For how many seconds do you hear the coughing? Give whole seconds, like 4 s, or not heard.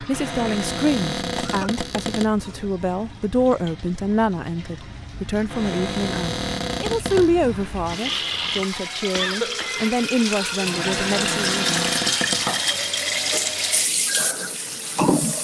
3 s.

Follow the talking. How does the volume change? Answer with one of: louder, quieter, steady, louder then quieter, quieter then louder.
steady.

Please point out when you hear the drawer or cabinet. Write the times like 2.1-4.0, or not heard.
0.1-2.3, 5.5-7.3, 10.6-12.7.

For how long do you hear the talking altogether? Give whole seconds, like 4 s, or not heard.
12 s.